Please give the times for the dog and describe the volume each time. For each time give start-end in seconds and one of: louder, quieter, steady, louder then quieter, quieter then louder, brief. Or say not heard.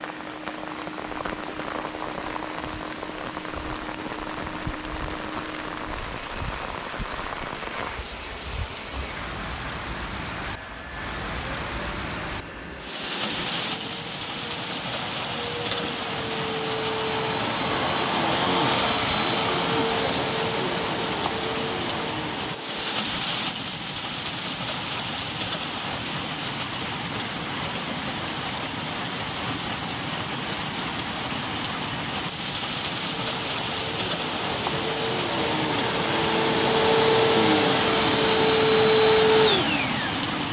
not heard.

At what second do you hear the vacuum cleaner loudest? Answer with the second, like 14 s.
39 s.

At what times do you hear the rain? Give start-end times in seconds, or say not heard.
0.0-40.4.